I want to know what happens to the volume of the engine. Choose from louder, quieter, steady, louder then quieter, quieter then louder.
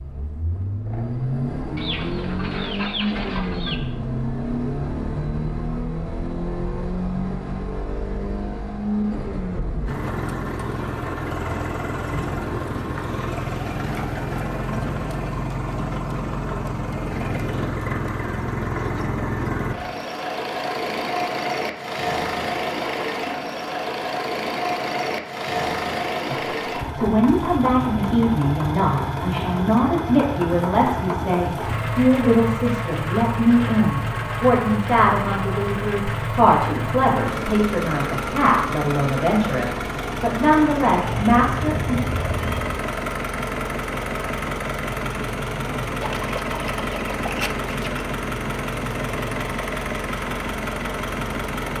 steady.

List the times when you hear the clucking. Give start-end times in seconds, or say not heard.
1.8-3.8, 46.0-48.0.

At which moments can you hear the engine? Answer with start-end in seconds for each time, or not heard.
0.0-51.7.